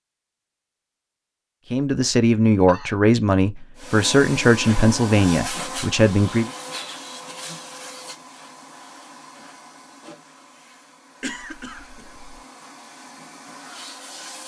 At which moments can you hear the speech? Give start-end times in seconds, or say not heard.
1.7-6.5.